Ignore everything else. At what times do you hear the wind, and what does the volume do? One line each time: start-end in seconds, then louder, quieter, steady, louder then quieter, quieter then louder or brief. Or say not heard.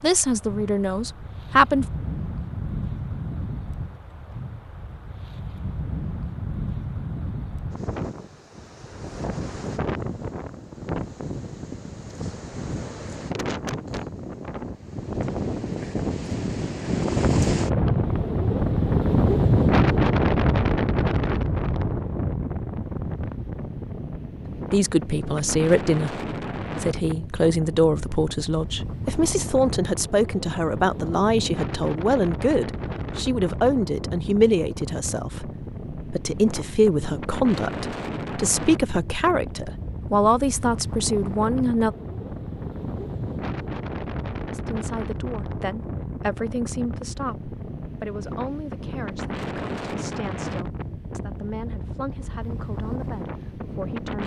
0.0-54.2 louder then quieter.